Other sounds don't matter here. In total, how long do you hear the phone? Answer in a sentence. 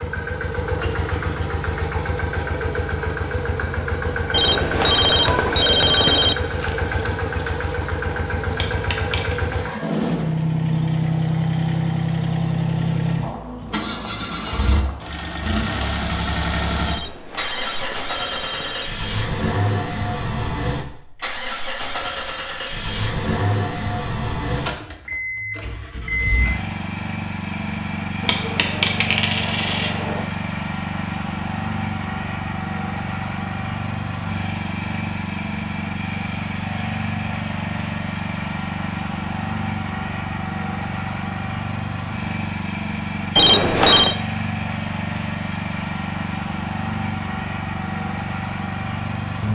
You can hear the phone for 5 seconds altogether.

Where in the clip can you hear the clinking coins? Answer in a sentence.
You can hear the clinking coins from 8.5 to 9.3 s and from 28.2 to 30.2 s.